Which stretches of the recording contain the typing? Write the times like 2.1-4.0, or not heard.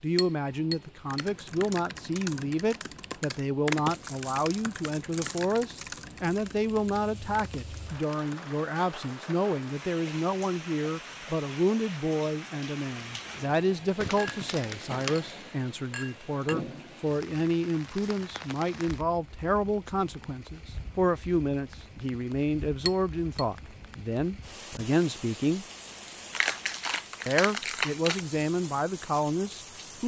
1.1-8.6.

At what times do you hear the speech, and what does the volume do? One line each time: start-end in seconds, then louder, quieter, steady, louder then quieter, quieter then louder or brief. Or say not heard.
0.0-25.6 steady
27.2-30.0 brief.